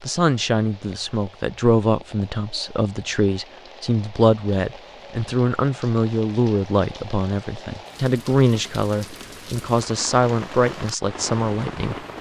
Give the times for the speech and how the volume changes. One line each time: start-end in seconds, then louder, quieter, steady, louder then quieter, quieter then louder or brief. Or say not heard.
0.0-11.9 steady.